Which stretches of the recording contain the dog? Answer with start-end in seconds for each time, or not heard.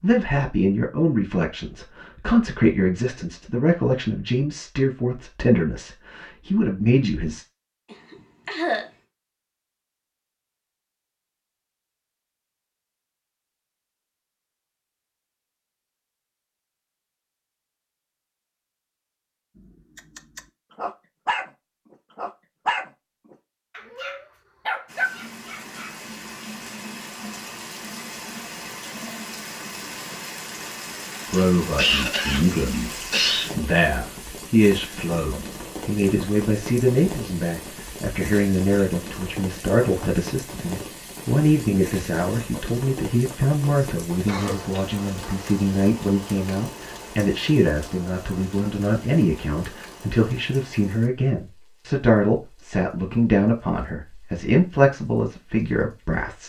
19.9-21.5, 22.1-25.9.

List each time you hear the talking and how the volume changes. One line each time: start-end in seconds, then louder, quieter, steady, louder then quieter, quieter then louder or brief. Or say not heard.
0.0-7.5 steady
31.2-56.4 steady.